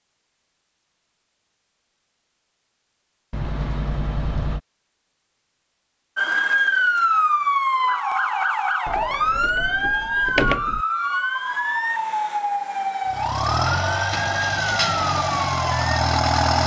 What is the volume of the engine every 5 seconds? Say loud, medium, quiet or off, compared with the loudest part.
off, off, loud, loud.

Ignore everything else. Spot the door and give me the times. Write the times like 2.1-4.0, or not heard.
3.3-4.6, 8.8-10.8.